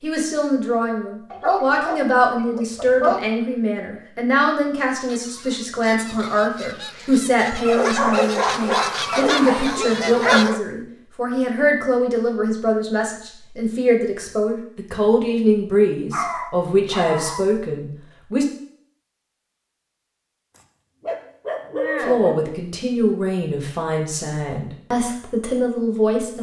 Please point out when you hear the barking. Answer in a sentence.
The barking can be heard from 1.3 to 3.3 s, from 7.7 to 10.6 s, from 16.1 to 17.4 s and from 20.6 to 22.4 s.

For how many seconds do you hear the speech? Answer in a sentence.
The speech can be heard for 23 seconds in total.